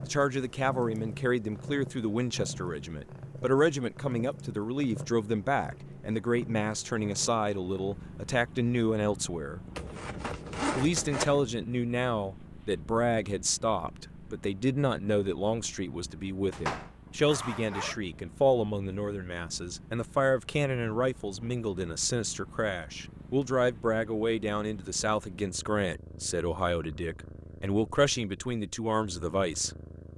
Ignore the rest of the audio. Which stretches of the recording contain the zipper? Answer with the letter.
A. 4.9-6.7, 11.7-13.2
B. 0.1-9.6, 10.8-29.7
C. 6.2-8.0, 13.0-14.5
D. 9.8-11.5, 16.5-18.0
D.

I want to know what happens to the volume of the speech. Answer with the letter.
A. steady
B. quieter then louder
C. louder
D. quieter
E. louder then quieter
A.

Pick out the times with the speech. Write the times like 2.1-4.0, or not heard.
0.1-9.6, 10.8-29.7.